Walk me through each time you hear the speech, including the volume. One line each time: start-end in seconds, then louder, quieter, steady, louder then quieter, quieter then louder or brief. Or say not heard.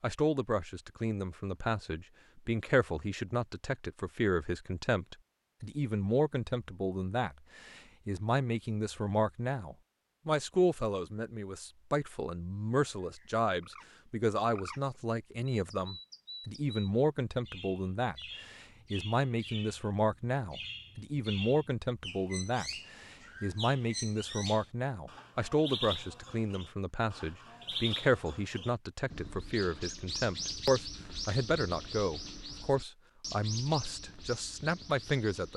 0.0-35.5 steady.